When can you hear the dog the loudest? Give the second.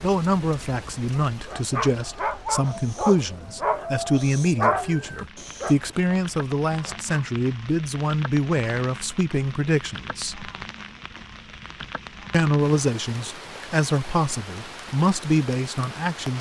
5 s.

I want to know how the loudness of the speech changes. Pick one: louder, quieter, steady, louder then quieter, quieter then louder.
steady.